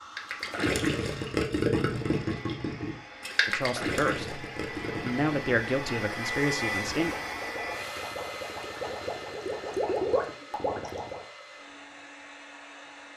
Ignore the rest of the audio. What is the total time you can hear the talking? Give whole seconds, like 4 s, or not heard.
4 s.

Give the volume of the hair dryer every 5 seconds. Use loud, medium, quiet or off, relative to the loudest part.
medium, loud, medium.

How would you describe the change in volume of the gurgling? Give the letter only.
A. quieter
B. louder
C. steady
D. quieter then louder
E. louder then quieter
D.